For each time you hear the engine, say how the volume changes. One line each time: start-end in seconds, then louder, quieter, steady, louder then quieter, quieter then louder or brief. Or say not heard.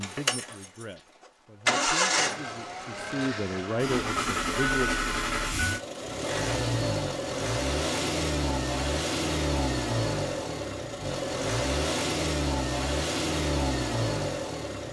0.0-14.8 steady.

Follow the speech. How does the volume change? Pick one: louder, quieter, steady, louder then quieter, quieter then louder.
louder.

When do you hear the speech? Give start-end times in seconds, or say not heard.
0.0-5.1.